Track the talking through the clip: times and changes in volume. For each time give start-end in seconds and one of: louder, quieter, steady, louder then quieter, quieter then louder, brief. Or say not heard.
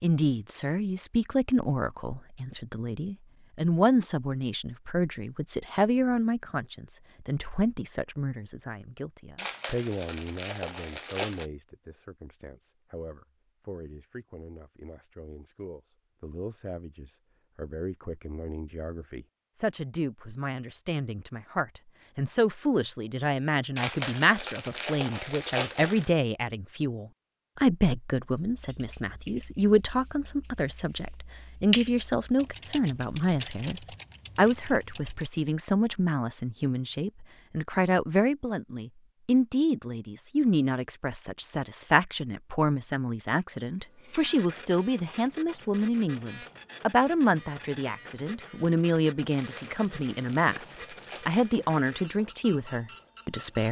0.0-53.6 quieter then louder.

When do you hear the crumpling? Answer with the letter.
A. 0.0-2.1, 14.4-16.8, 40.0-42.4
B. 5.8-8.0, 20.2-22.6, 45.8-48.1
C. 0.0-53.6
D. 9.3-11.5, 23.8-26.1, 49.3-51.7
D.